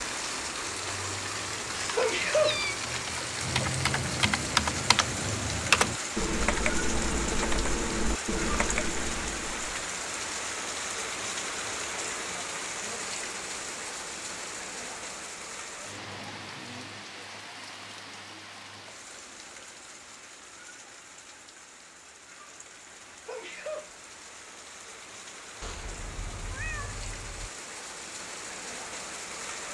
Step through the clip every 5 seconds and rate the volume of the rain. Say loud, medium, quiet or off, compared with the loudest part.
loud, loud, loud, medium, quiet, medium.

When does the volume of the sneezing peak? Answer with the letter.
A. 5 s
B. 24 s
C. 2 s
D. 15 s
C.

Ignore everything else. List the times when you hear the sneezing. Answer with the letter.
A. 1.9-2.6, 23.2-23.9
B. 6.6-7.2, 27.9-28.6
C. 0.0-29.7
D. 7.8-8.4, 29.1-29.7
A.